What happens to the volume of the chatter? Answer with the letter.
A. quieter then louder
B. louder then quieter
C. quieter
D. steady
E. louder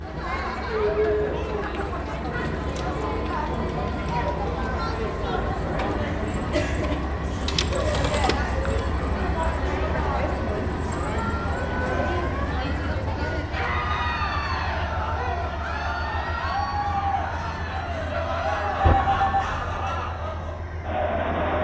D.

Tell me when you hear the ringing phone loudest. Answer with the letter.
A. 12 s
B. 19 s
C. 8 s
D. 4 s
B.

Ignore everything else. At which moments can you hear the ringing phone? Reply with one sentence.
The ringing phone can be heard from 7.5 to 8.3 s and from 18.8 to 19.9 s.